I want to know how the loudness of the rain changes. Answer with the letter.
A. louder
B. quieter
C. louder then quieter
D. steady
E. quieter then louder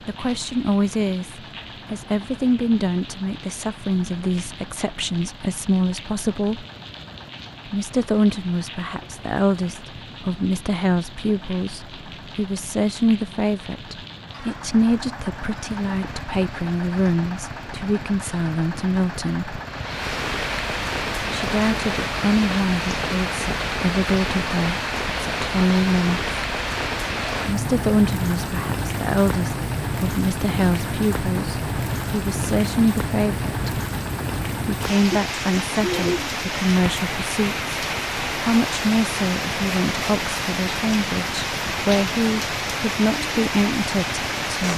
A.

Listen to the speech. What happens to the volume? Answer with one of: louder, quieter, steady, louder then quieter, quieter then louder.
steady.